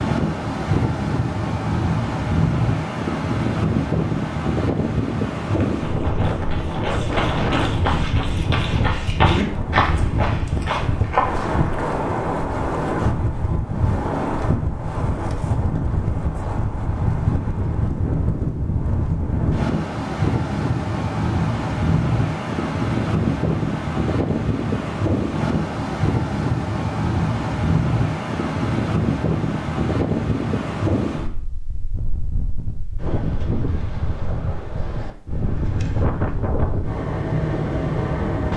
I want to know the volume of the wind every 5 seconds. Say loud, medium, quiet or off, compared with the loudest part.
loud, loud, loud, loud, loud, loud, medium, loud.